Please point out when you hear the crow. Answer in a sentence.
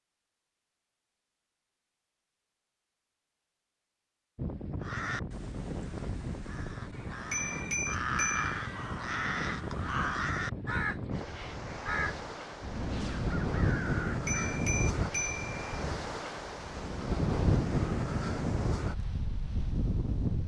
The crow can be heard from 4.8 to 14.6 s.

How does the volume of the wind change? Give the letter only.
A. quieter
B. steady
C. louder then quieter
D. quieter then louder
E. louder
E.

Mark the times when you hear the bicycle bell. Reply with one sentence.
You can hear the bicycle bell from 7.3 to 8.6 s and from 14.2 to 15.6 s.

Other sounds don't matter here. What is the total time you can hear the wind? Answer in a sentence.
The wind can be heard for 16 seconds in total.